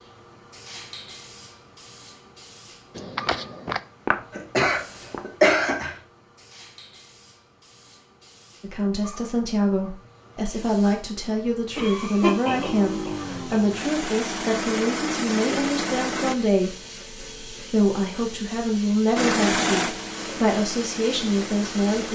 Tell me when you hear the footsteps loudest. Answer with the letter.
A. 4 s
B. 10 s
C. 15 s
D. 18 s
A.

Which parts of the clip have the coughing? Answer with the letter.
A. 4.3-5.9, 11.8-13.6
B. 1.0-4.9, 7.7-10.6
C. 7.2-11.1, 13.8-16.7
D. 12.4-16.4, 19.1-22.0
A.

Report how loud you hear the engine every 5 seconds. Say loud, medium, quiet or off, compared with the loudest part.
off, off, medium, loud, medium.